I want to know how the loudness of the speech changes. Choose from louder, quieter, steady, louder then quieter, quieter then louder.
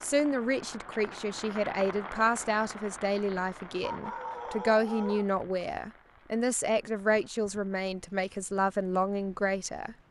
steady.